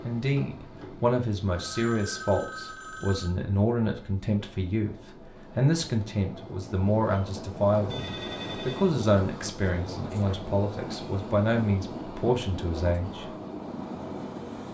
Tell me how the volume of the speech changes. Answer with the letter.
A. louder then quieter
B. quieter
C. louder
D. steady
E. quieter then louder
D.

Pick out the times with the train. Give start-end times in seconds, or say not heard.
0.0-14.6.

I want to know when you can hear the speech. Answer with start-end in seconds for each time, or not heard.
0.0-13.3.